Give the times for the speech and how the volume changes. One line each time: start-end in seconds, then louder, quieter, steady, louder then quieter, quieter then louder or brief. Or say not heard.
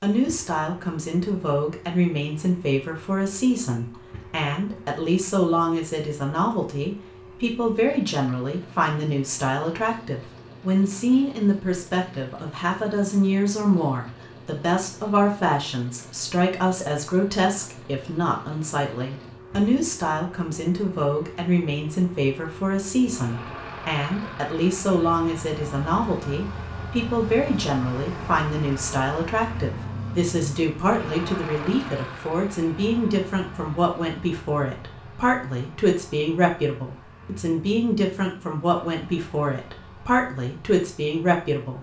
0.0-41.7 steady.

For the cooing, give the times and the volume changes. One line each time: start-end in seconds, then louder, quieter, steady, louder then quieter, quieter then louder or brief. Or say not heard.
not heard.